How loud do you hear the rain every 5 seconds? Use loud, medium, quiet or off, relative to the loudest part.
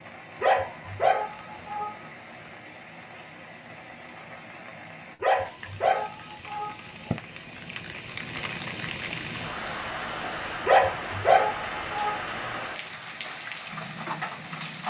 medium, loud, loud.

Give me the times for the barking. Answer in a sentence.
The barking can be heard from 0.3 to 2.2 s, from 5.2 to 7.2 s and from 10.6 to 12.6 s.